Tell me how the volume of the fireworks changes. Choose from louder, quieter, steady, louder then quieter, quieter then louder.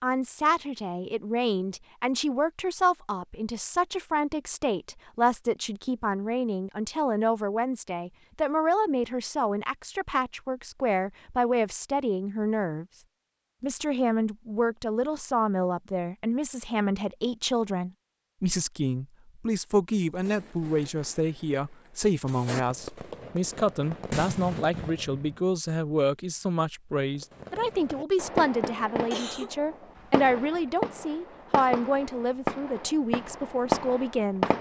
louder.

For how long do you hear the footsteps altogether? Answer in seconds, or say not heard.
not heard.